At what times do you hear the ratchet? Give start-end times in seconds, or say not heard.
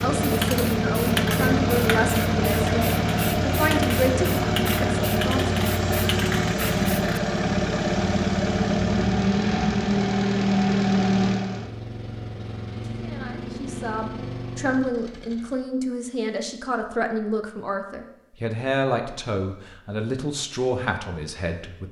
not heard.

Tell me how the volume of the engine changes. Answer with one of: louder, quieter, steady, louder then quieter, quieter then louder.
quieter.